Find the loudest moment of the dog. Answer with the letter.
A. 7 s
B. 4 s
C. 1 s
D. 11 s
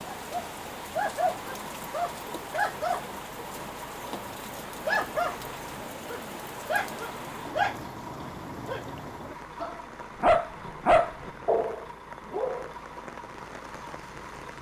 D.